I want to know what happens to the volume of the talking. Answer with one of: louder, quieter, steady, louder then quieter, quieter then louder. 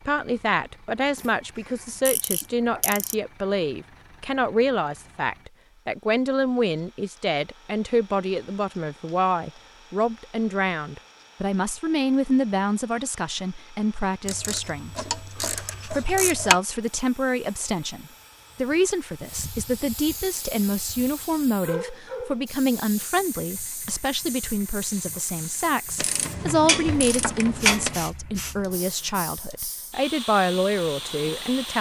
steady.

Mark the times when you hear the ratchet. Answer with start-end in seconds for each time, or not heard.
1.1-3.1, 14.2-16.6, 25.9-28.1.